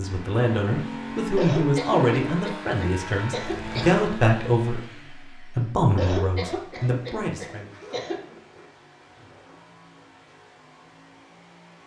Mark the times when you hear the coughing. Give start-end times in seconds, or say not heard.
1.4-3.9, 6.0-8.2.